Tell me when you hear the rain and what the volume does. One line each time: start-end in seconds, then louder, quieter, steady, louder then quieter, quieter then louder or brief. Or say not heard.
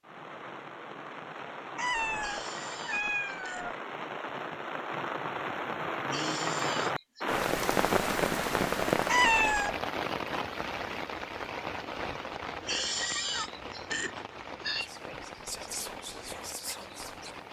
0.0-17.4 louder then quieter.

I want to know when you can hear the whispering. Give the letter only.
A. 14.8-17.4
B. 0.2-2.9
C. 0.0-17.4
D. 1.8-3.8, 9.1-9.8
A.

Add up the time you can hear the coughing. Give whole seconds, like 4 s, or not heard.
5 s.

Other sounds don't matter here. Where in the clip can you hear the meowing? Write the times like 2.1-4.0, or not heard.
1.8-3.8, 9.1-9.8.